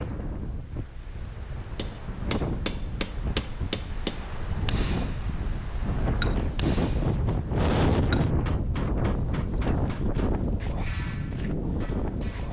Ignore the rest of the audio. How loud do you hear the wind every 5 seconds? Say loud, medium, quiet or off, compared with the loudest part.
medium, loud, loud.